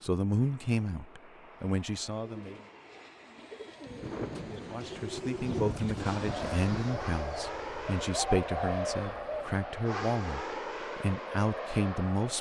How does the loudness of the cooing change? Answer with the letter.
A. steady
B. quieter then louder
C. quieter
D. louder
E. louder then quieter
D.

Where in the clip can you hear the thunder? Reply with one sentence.
You can hear the thunder from 3.9 to 7.2 s.